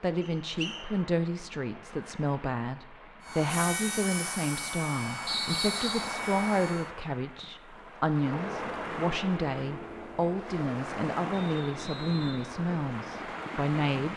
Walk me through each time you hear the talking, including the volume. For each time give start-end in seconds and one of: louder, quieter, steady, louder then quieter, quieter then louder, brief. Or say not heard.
0.0-14.1 steady.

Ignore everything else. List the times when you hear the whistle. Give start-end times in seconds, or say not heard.
0.2-0.8, 5.2-6.1, 11.3-12.4.